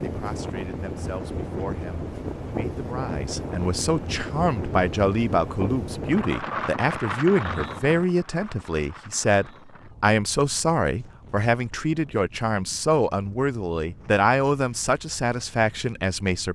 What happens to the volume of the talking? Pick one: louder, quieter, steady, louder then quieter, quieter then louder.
louder.